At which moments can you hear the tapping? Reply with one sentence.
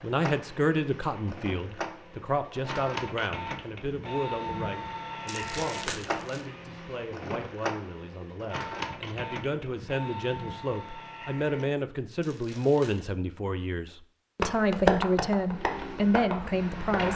You can hear the tapping from 14.4 to 17.0 s.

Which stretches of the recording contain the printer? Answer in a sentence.
You can hear the printer from 0.0 to 11.8 s and from 15.4 to 17.1 s.